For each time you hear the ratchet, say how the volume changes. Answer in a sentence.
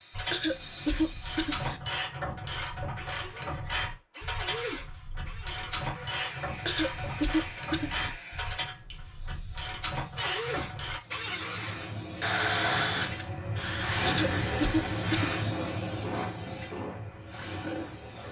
The ratchet can be heard from 0.1 to 11.0 s, at a steady volume.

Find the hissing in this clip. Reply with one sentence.
The hissing can be heard from 0.0 to 1.4 s and from 6.1 to 18.2 s.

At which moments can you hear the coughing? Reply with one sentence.
You can hear the coughing from 0.3 to 1.8 s, from 6.7 to 8.2 s and from 14.1 to 15.3 s.